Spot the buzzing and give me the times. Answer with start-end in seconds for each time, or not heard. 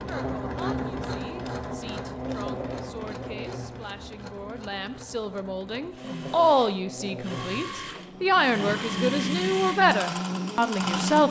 0.0-11.2.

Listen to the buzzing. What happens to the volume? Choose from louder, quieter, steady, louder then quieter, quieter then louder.
quieter then louder.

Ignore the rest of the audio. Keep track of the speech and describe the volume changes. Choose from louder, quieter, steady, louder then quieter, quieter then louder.
louder.